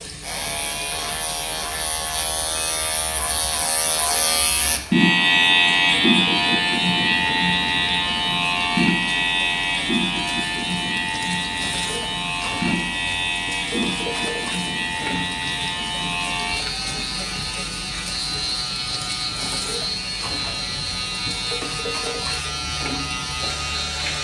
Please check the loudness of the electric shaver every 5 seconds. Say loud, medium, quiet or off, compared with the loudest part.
medium, loud, medium, medium, medium.